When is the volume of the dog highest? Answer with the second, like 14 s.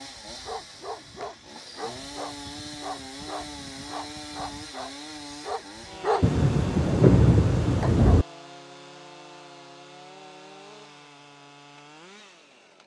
6 s.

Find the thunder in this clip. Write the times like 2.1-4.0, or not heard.
6.2-8.2.